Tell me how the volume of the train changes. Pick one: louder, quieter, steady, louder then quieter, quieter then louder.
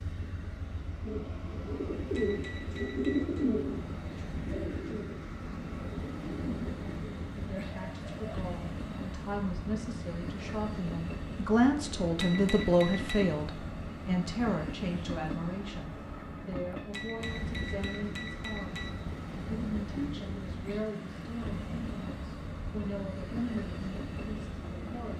steady.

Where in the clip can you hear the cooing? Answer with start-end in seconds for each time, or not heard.
1.1-8.3.